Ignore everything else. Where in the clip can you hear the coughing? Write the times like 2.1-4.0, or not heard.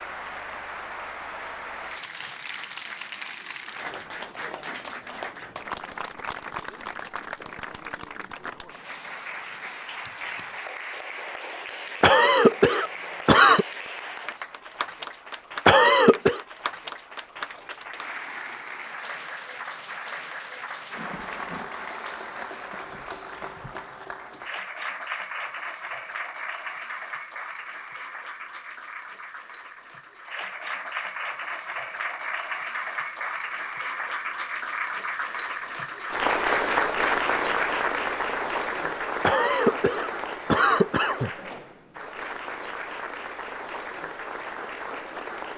12.0-13.7, 15.7-16.4, 39.2-41.3.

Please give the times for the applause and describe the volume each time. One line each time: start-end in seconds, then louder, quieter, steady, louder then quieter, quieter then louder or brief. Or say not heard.
0.0-45.5 louder.